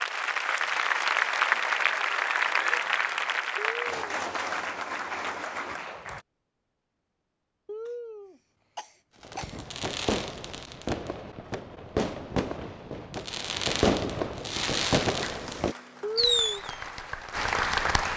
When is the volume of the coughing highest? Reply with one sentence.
The volume of the coughing peaks at 16 seconds.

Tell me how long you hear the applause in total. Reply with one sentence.
The applause can be heard for 10 seconds in total.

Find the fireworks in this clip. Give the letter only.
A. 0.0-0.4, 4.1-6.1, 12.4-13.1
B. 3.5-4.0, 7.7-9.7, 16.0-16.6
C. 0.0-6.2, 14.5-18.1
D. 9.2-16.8
D.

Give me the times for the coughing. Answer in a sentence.
You can hear the coughing from 3.5 to 4.0 s, from 7.7 to 9.7 s and from 16.0 to 16.6 s.